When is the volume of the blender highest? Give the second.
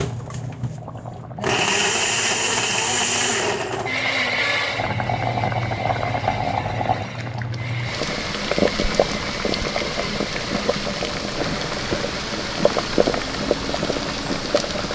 2 s.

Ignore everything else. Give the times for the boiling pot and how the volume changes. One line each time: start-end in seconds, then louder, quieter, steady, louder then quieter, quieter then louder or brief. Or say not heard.
0.0-14.8 louder.